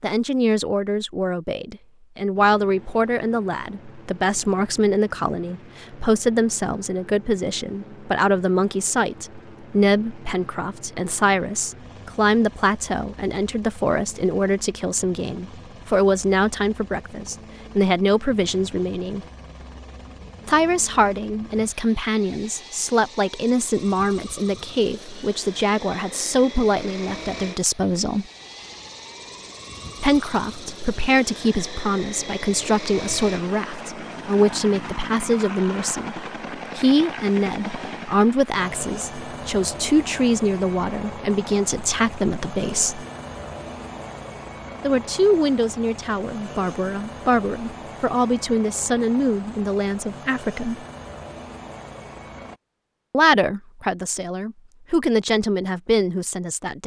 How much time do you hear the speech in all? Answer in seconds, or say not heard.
50 s.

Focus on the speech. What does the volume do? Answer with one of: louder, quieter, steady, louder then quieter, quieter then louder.
steady.